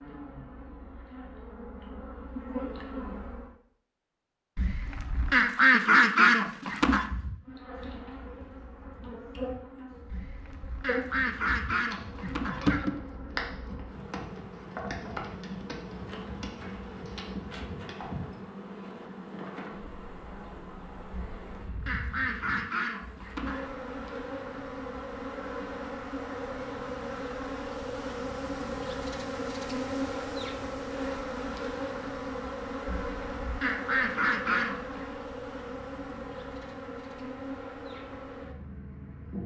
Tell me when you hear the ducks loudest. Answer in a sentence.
The volume of the ducks peaks at 6 seconds.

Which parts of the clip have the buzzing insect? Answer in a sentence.
You can hear the buzzing insect from 0.0 to 3.5 s and from 7.5 to 39.4 s.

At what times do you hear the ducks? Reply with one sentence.
You can hear the ducks from 4.5 to 7.0 s, from 10.1 to 12.9 s, from 21.1 to 23.6 s and from 32.9 to 35.1 s.